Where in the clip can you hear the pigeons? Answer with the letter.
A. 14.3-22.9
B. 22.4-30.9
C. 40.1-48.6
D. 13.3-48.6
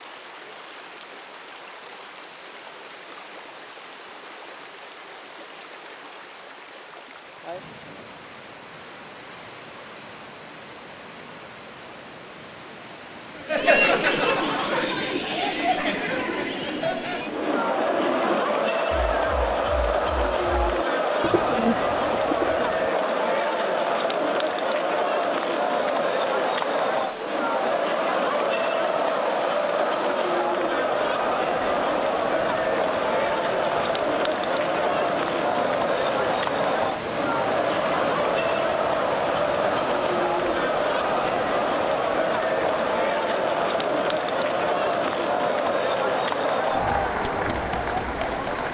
A.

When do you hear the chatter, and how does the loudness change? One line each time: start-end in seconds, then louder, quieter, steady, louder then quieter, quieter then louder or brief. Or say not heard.
13.3-48.6 steady.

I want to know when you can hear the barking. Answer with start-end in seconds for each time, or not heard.
not heard.